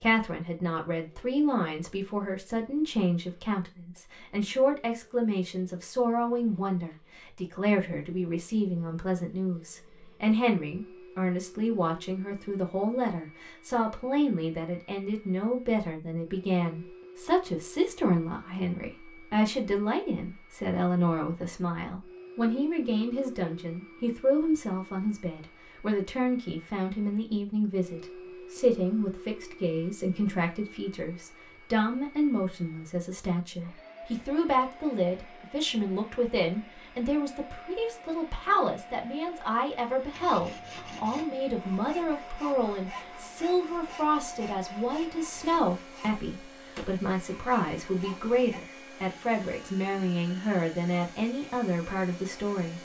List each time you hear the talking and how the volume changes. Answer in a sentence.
The talking can be heard from 0.0 to 52.7 s, at a steady volume.